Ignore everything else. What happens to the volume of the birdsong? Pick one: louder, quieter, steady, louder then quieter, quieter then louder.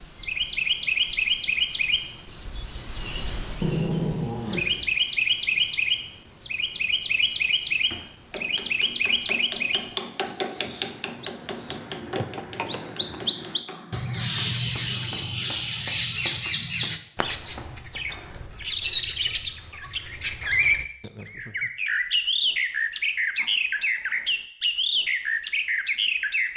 steady.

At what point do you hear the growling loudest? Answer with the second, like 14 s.
4 s.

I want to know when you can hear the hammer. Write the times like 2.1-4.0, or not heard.
7.9-18.0.